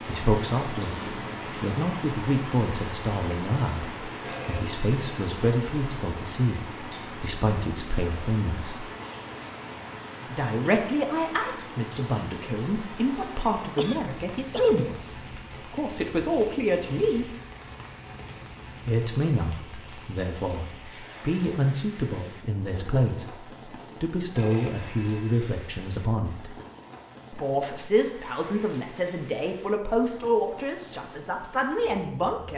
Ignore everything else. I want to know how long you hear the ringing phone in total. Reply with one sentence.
You can hear the ringing phone for 2 seconds altogether.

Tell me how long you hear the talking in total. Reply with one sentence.
You can hear the talking for 28 seconds altogether.